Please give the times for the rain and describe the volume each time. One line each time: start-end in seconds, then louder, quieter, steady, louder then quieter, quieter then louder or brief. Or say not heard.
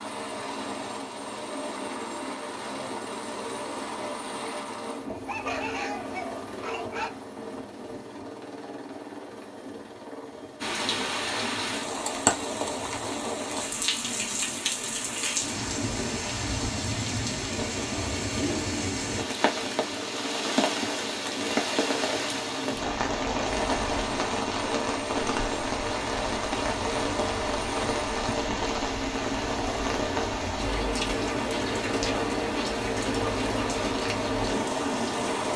10.6-35.5 steady.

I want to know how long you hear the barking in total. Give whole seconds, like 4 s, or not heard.
2 s.